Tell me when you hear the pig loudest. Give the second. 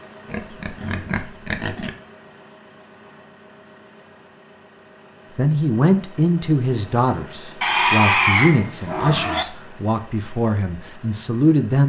8 s.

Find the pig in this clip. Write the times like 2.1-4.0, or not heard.
0.3-1.9, 7.6-9.4.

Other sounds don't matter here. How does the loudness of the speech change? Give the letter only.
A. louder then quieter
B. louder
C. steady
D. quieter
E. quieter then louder
D.